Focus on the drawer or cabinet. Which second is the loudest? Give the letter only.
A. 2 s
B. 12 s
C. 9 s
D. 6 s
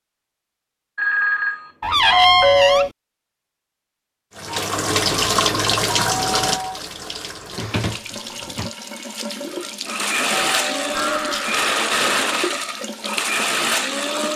A.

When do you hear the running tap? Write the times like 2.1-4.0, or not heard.
4.3-14.3.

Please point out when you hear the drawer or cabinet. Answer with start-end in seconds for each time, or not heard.
1.8-2.9, 7.5-8.7.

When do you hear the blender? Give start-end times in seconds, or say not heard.
9.5-14.3.